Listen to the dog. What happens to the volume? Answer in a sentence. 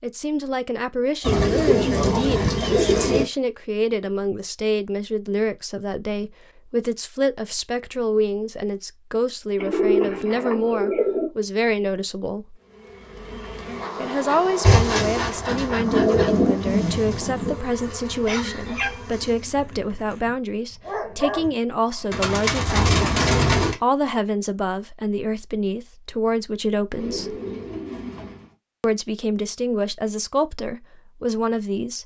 The volume of the dog goes down, then up.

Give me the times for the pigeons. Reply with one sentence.
You can hear the pigeons from 1.2 to 3.2 s, from 9.6 to 11.2 s, from 14.6 to 17.6 s, from 22.1 to 23.8 s and from 26.9 to 28.6 s.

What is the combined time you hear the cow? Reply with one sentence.
The cow can't be heard in this clip.